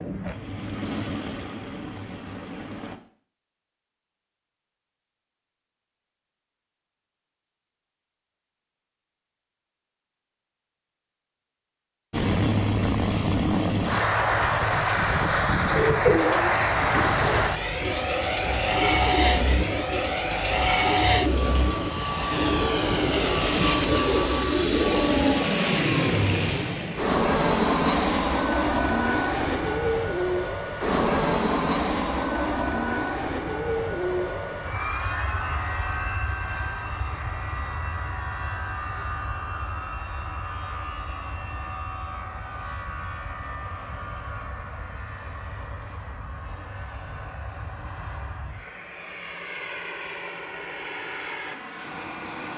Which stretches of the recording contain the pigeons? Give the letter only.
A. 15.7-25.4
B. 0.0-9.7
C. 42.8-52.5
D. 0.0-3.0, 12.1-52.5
A.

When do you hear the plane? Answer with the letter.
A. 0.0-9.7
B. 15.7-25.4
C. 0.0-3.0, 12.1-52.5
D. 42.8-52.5
C.